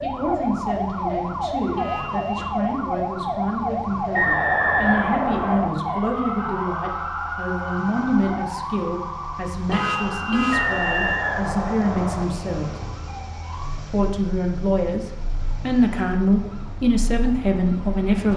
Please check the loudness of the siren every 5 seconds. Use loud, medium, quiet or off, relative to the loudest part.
loud, loud, medium, quiet.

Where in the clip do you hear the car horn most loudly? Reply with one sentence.
The loudest moment of the car horn is at 10 seconds.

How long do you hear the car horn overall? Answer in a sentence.
The car horn can be heard for 2 seconds in total.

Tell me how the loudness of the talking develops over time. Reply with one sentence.
The loudness of the talking goes up.